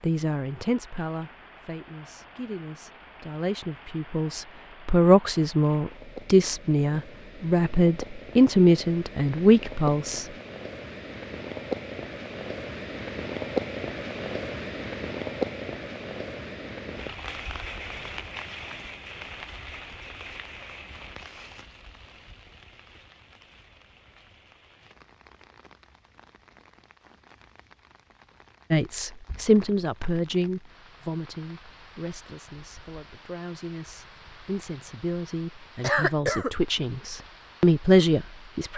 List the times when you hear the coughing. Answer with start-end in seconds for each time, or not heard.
35.8-36.5.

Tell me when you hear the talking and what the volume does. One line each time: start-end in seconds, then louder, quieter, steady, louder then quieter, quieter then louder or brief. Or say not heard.
0.0-10.3 louder
28.7-38.7 quieter then louder.